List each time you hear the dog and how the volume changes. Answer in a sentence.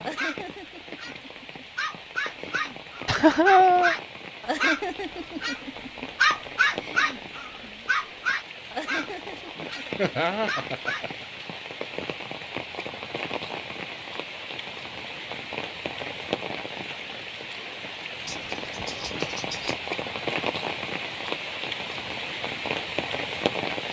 The dog can be heard from 0.0 to 11.2 s, getting louder then quieter.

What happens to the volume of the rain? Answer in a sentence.
The volume of the rain goes up.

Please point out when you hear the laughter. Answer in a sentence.
You can hear the laughter from 3.0 to 4.0 s, from 9.9 to 11.4 s and from 18.2 to 19.8 s.